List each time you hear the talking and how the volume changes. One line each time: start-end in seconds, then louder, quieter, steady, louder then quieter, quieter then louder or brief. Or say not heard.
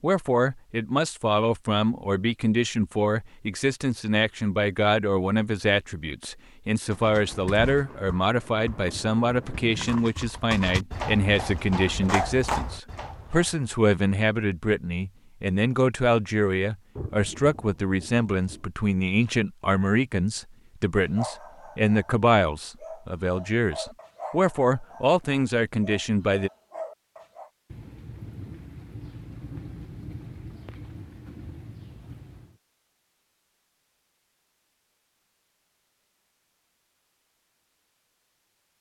0.0-26.5 steady.